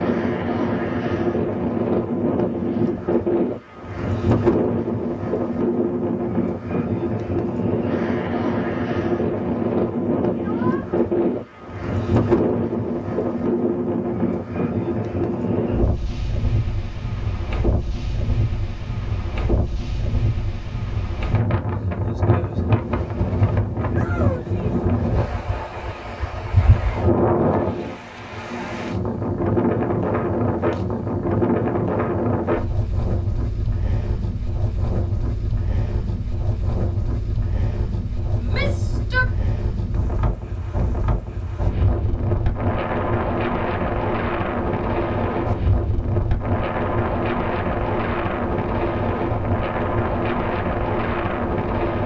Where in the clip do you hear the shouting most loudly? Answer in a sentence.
The volume of the shouting peaks at 39 seconds.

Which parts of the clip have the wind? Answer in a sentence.
The wind can be heard from 0.0 to 52.0 s.